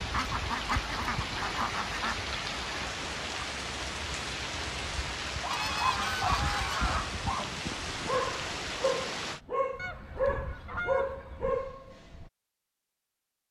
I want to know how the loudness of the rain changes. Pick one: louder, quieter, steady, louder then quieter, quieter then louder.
steady.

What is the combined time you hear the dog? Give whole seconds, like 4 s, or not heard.
7 s.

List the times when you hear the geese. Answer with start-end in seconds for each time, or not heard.
0.1-2.1, 5.5-7.1, 9.8-11.6.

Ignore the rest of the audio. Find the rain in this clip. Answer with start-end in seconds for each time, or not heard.
0.0-9.4.